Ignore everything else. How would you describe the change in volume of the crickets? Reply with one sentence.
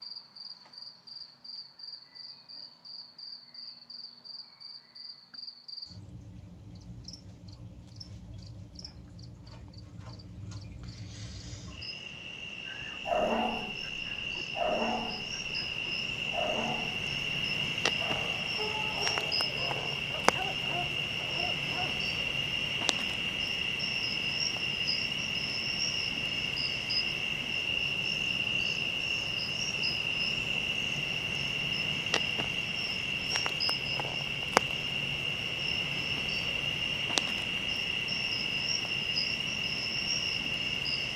The loudness of the crickets goes up.